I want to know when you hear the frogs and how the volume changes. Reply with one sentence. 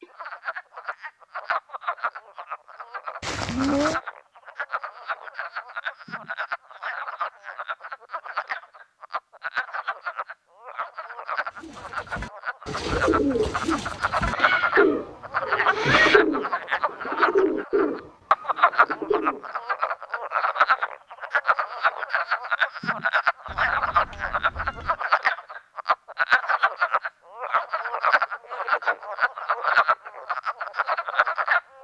You can hear the frogs from 0.0 to 31.6 s, getting louder.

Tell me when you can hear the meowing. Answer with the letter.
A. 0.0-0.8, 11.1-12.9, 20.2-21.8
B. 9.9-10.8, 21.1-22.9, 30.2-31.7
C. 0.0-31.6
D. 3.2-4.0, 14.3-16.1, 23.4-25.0
D.